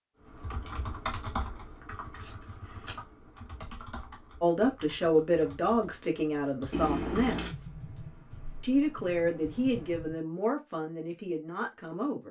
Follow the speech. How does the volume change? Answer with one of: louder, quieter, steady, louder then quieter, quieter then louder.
quieter.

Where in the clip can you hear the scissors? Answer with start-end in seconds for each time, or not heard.
2.2-3.0, 6.7-7.5.